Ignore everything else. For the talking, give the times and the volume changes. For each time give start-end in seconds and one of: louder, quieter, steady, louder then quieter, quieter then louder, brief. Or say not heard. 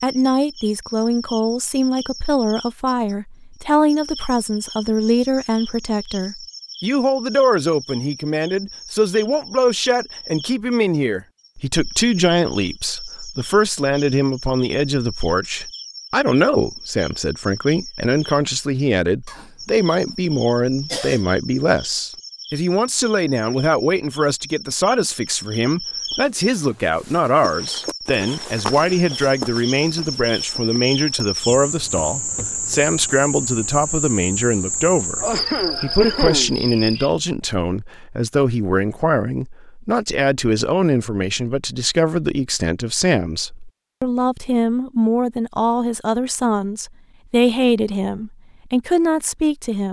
0.0-49.8 steady.